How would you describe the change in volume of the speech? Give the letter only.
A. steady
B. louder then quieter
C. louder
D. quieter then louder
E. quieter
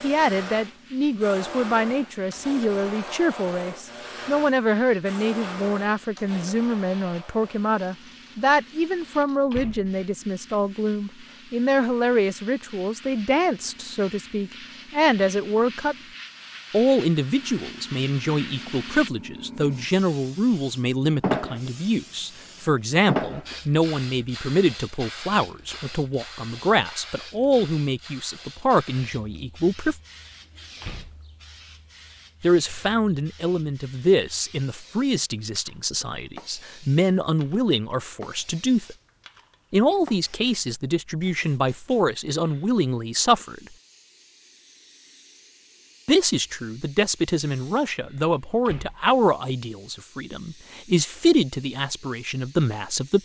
A.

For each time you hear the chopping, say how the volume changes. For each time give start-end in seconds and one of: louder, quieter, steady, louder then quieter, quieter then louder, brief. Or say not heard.
not heard.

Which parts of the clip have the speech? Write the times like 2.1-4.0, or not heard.
0.0-15.9, 16.7-29.9, 32.4-39.0, 39.7-43.6, 46.0-53.2.